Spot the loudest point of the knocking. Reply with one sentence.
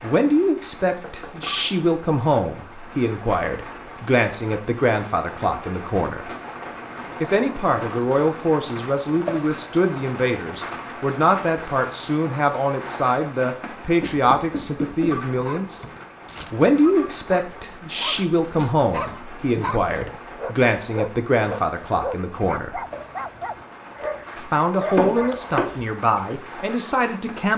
The volume of the knocking peaks at 25 seconds.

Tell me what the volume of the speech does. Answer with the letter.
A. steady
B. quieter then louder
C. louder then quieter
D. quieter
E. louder
A.